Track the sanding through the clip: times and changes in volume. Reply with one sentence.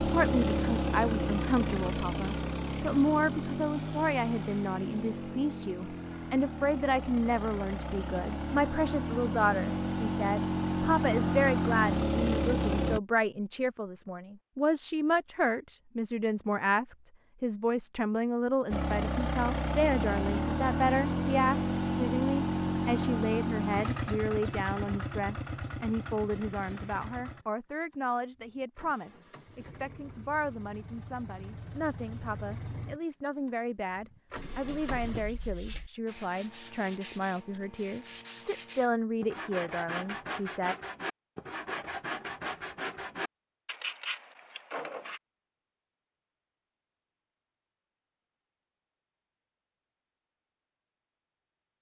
You can hear the sanding from 34.3 to 45.2 s, getting louder.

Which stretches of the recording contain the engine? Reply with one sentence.
The engine can be heard from 0.0 to 13.0 s and from 18.7 to 35.2 s.